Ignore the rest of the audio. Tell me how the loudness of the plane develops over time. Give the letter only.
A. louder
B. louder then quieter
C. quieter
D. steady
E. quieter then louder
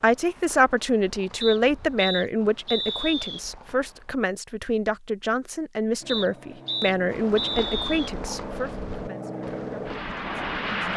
A.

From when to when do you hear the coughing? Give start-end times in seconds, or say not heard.
not heard.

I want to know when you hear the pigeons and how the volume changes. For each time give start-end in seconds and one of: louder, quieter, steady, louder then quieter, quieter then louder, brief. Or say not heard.
not heard.